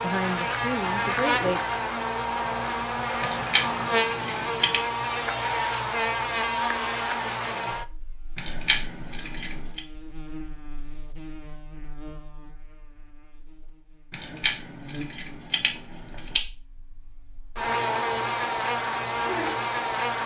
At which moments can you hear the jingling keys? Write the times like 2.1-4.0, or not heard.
3.2-4.8, 8.3-9.8, 14.1-16.4.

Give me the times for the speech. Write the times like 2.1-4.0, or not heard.
0.0-1.6.